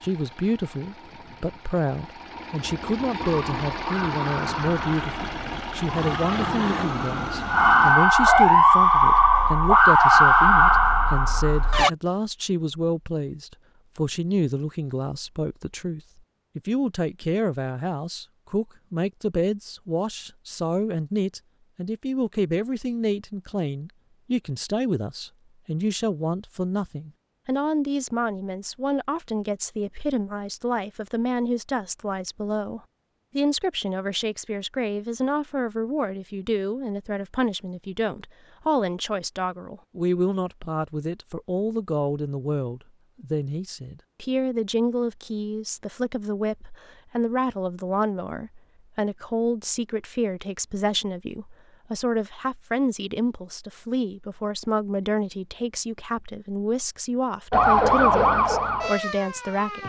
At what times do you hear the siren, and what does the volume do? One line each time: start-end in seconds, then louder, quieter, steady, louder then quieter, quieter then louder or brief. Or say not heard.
3.2-11.9 louder
57.5-59.8 brief.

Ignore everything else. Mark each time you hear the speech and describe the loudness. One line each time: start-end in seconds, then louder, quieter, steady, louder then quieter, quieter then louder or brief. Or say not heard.
0.0-59.8 steady.